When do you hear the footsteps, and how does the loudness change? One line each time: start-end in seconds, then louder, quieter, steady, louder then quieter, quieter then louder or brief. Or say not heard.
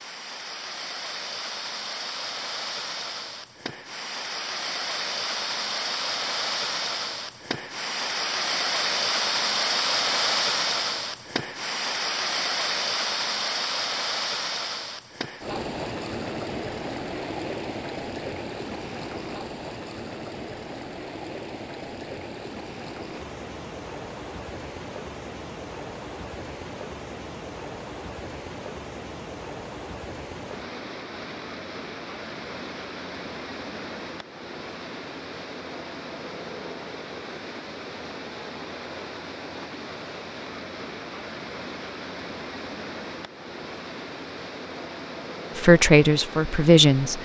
not heard.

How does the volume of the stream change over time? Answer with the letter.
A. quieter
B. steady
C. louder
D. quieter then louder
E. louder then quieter
A.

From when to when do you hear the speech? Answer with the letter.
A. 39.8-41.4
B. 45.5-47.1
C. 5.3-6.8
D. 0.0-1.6
B.